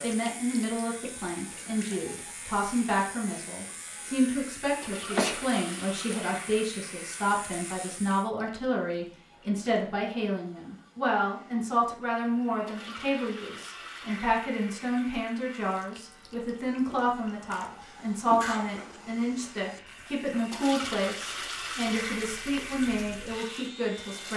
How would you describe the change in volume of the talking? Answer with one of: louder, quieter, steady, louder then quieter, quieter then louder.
steady.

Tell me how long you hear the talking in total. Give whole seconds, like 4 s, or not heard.
24 s.